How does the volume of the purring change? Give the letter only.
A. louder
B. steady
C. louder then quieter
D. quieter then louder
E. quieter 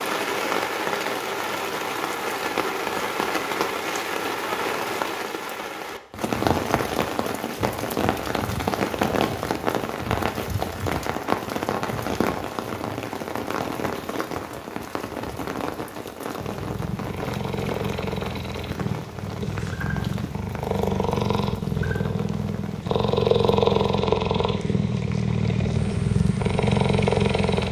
A.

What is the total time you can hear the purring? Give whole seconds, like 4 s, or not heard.
11 s.